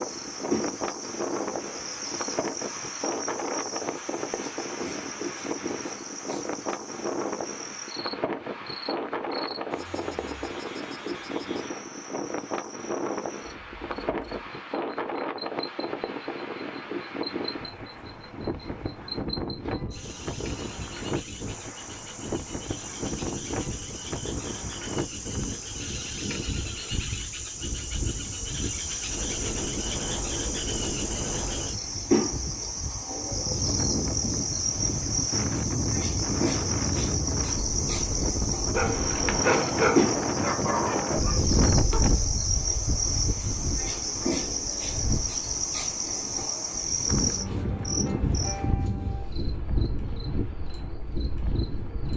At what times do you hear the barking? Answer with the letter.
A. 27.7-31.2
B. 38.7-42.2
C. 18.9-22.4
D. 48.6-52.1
B.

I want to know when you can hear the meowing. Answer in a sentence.
The meowing can't be heard in this clip.